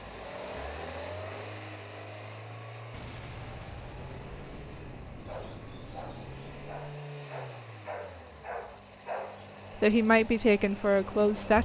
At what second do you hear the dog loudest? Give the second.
9 s.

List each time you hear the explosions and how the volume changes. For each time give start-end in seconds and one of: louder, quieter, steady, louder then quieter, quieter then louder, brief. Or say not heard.
2.9-7.0 steady.